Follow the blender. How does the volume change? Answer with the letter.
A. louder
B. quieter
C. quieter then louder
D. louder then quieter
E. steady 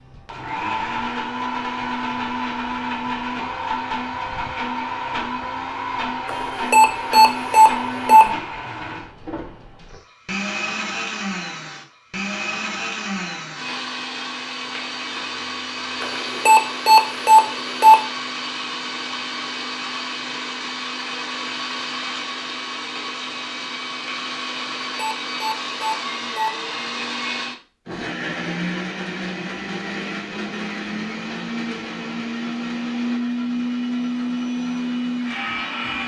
E.